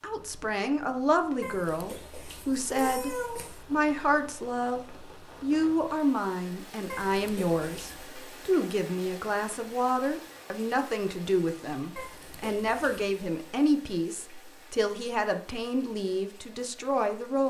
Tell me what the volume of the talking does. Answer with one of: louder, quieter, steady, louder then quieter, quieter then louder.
steady.